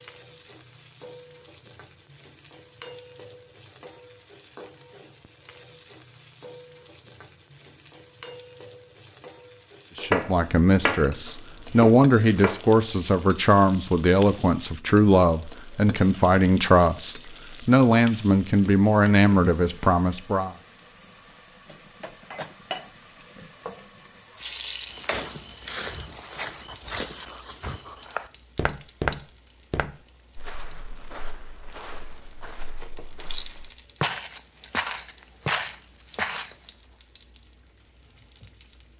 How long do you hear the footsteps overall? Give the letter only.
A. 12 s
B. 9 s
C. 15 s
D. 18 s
A.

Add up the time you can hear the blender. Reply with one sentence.
You can't hear the blender here.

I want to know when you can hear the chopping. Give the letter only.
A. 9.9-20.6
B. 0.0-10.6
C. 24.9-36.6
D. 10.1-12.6
D.